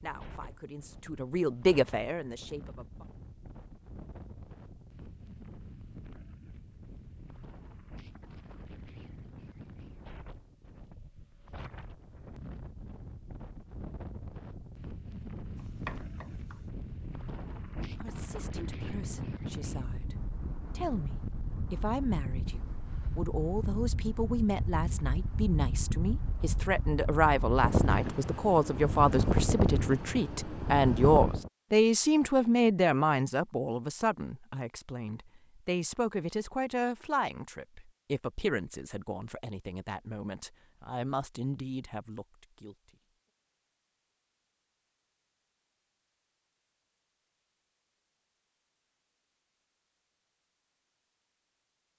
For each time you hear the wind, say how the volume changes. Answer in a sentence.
You can hear the wind from 0.0 to 31.5 s, getting louder.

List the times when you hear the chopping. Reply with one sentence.
The chopping can be heard from 15.6 to 16.6 s.